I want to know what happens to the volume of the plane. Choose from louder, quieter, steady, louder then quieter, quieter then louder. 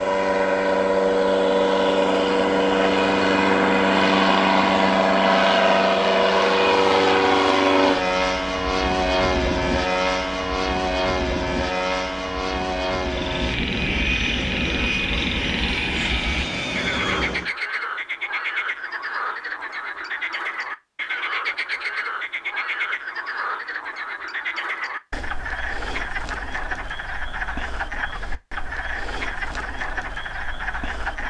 quieter.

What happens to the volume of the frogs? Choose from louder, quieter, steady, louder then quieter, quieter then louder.
steady.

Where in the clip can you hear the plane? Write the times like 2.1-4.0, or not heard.
0.0-17.5.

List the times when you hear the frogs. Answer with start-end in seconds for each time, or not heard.
13.1-31.2.